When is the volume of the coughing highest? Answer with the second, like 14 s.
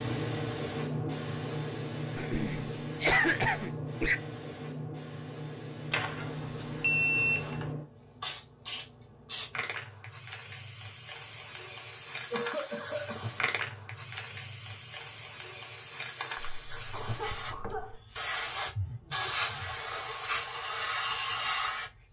3 s.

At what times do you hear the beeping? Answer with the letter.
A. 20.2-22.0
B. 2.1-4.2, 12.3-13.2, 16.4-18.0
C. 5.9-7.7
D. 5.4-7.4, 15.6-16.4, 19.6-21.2
C.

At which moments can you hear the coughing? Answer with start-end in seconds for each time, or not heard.
2.1-4.2, 12.3-13.2, 16.4-18.0.